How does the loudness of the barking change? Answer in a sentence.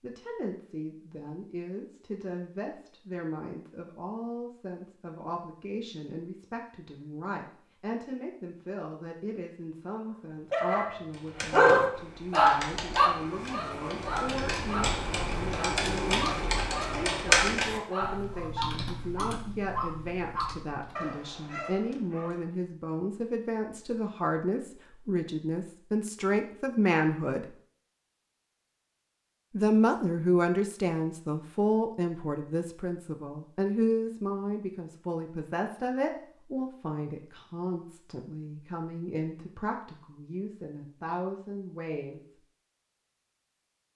The volume of the barking goes down.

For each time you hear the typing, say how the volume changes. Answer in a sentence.
The typing can be heard from 11.1 to 21.1 s, getting louder then quieter.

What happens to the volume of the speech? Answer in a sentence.
The loudness of the speech goes up, then down.